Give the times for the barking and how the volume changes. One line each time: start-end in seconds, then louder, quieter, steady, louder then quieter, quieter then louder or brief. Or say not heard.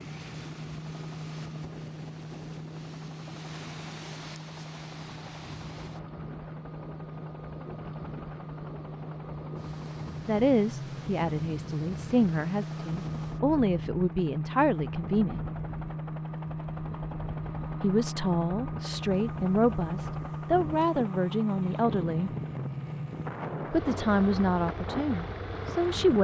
not heard.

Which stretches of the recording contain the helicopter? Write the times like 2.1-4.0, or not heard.
0.0-26.1.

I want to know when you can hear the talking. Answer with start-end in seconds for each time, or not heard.
10.2-15.4, 17.8-22.3, 23.7-26.1.